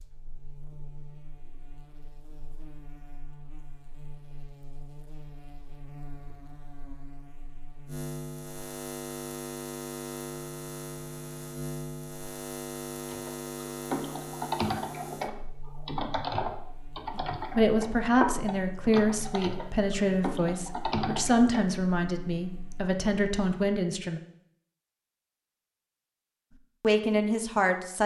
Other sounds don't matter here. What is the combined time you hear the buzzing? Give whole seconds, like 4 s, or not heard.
24 s.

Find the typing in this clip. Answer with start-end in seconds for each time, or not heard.
13.1-21.6.